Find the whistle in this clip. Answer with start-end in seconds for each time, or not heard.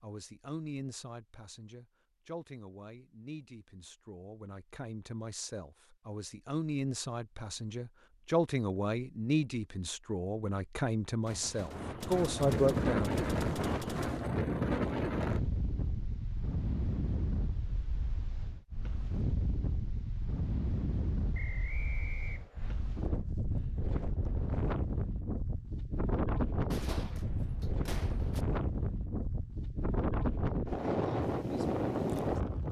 21.3-22.8.